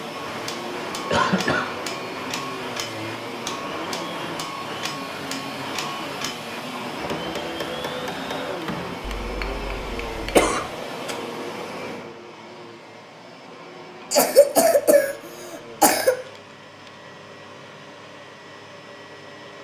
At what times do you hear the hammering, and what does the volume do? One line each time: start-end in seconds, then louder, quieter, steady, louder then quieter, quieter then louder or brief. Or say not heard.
0.1-10.5 steady.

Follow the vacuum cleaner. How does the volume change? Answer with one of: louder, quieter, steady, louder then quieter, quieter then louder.
quieter.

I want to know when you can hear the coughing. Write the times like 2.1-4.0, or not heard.
1.1-1.7, 10.3-11.2, 14.1-16.1.